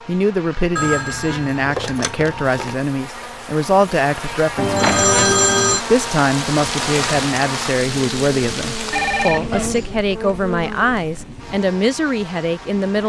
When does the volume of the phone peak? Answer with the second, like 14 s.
5 s.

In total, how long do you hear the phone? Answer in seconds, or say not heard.
4 s.